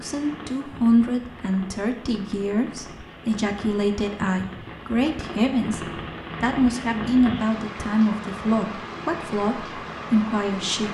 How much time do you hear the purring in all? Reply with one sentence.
The purring can't be heard in this clip.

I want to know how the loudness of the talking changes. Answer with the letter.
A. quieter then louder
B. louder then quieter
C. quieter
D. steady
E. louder
D.